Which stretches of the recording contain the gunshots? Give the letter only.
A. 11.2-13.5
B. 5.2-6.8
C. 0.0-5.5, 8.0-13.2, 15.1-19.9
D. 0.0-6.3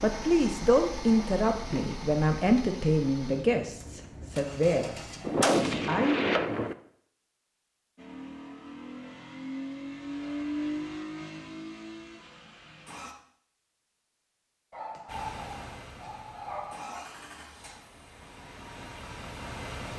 B.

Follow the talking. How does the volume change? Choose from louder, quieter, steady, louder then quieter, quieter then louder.
quieter.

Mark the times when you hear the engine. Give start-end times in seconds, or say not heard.
0.0-5.5, 8.0-13.2, 15.1-19.9.